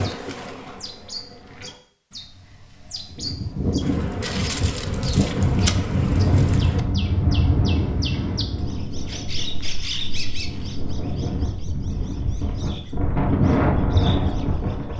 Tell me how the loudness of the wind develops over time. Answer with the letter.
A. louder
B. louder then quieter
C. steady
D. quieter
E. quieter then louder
E.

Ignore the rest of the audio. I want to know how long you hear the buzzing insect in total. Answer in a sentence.
You can hear the buzzing insect for 5 seconds altogether.